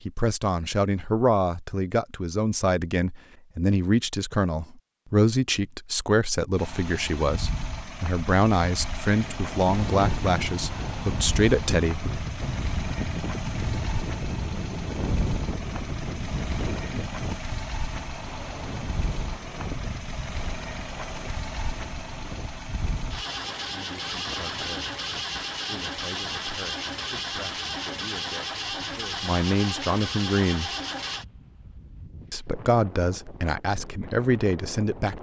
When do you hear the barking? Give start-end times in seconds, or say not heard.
not heard.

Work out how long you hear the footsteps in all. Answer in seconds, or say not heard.
not heard.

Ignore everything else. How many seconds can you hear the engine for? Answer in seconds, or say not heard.
25 s.